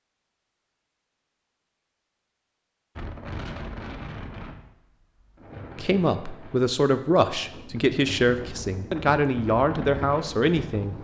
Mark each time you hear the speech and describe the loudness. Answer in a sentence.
The speech can be heard from 5.8 to 10.9 s, at a steady volume.